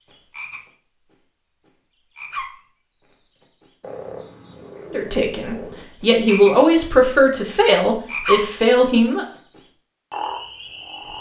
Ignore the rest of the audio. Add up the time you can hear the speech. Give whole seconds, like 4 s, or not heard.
4 s.